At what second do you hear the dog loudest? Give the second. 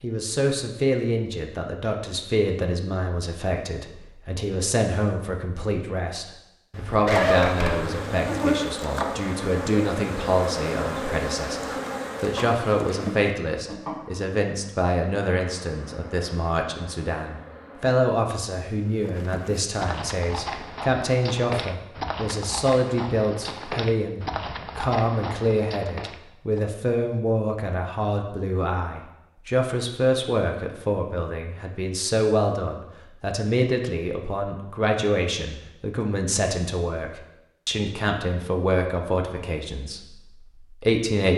7 s.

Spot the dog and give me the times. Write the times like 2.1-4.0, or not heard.
6.7-8.5.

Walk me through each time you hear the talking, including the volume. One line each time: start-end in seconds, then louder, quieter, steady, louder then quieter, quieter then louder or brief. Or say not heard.
0.0-41.3 steady.